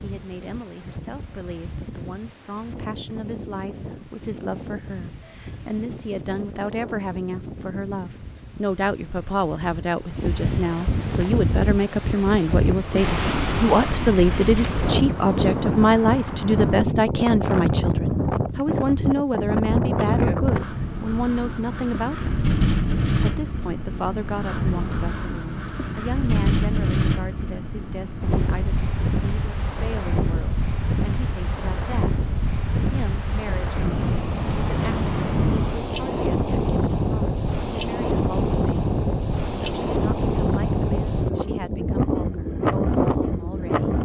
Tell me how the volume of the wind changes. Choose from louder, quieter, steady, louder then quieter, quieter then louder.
louder.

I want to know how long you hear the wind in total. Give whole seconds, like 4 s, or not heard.
44 s.